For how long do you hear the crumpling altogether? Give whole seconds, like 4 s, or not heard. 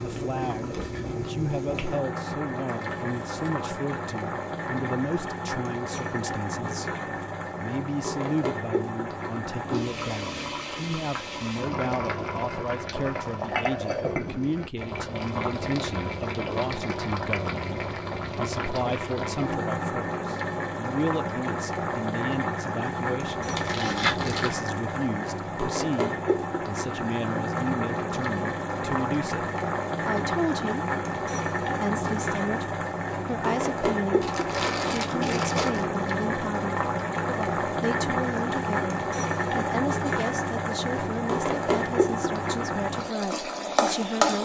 4 s.